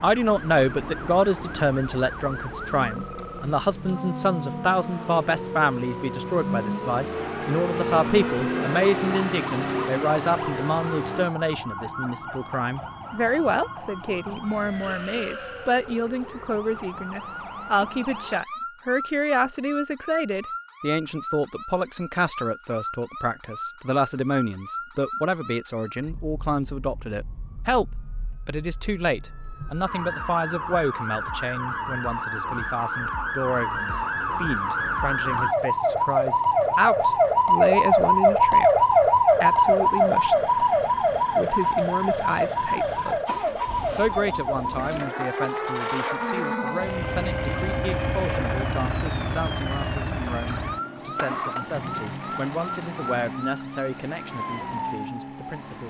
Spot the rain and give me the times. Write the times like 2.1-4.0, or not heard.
not heard.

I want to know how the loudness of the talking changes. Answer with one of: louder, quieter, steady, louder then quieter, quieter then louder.
quieter.